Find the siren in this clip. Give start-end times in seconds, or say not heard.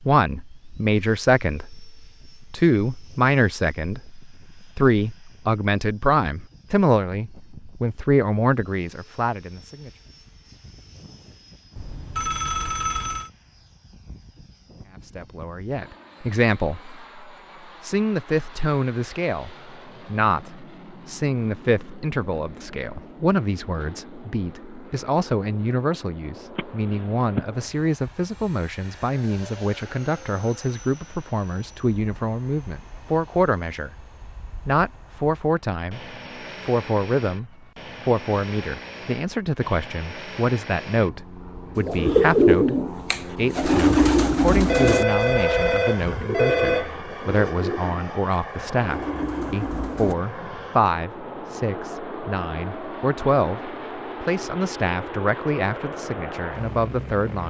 not heard.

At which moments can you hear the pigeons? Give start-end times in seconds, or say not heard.
41.8-50.1.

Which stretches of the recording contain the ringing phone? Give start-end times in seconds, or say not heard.
11.8-13.3, 44.6-47.0.